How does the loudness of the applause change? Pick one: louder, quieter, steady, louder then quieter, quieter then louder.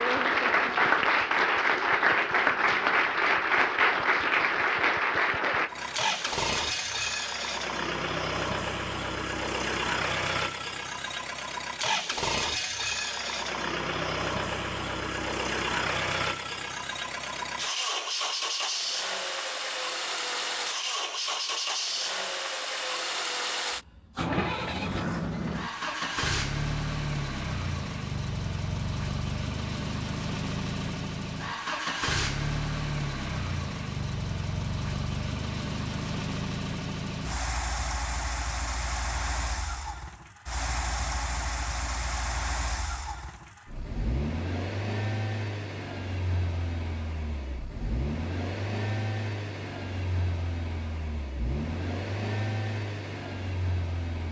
quieter.